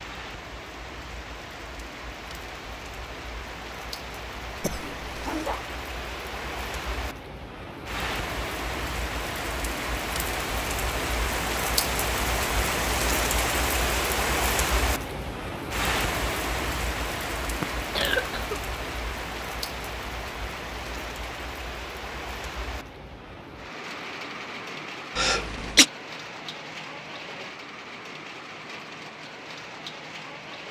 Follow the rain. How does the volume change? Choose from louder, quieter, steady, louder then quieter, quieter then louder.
louder then quieter.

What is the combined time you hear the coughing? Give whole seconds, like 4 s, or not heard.
3 s.